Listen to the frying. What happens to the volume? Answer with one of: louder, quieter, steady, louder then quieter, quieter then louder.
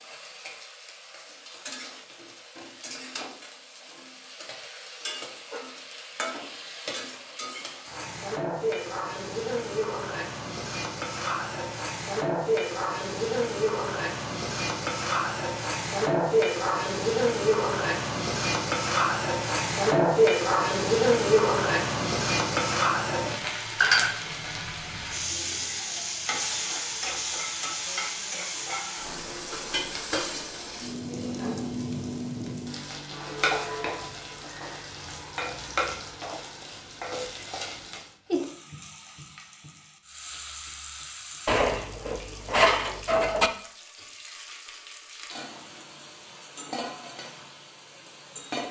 louder then quieter.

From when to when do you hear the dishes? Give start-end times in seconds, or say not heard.
41.5-43.5.